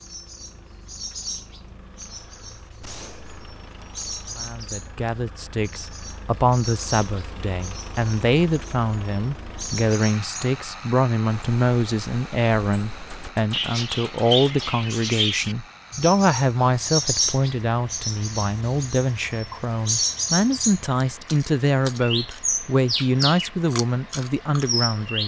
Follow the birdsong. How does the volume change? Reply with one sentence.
The loudness of the birdsong goes up.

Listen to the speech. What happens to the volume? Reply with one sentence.
The loudness of the speech stays about the same.